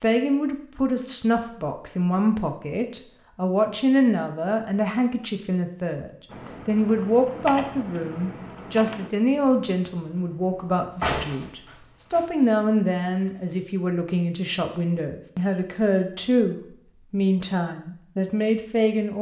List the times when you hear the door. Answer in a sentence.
You can hear the door from 11.0 to 12.2 s.